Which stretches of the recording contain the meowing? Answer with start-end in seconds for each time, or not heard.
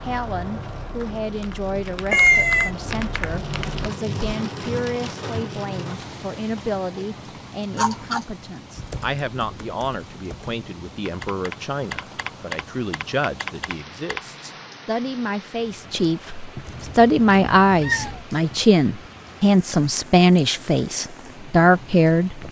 2.1-2.7, 7.7-8.2, 16.6-18.2.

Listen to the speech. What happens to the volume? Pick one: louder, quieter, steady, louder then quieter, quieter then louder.
louder.